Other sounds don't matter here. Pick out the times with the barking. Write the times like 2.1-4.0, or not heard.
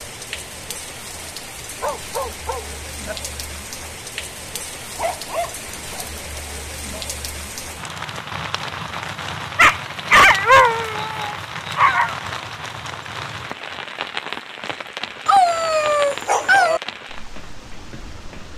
1.8-3.1, 5.0-6.5, 9.6-12.2, 15.2-16.8.